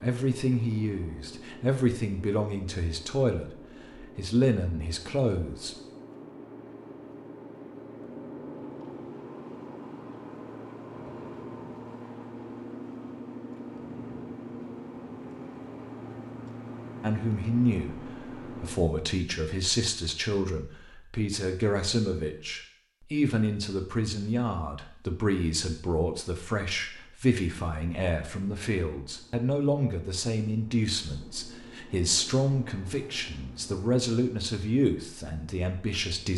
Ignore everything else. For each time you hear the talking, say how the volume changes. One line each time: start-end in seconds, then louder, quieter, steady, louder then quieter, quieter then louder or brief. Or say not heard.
0.0-5.8 quieter then louder
17.0-36.3 steady.